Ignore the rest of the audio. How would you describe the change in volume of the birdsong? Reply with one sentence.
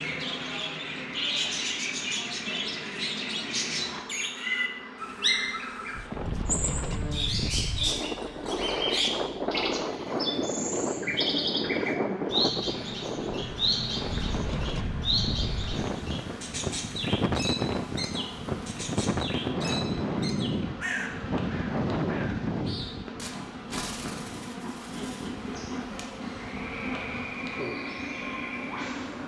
The volume of the birdsong goes down.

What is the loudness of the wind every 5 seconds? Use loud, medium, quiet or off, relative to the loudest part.
off, loud, loud, loud, loud, quiet.